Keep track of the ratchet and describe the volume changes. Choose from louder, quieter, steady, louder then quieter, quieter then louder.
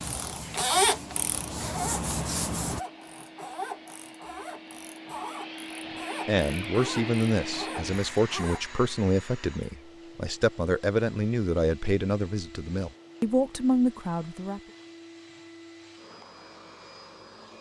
quieter.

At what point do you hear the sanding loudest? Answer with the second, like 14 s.
2 s.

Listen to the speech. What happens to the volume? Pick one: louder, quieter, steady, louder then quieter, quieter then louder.
steady.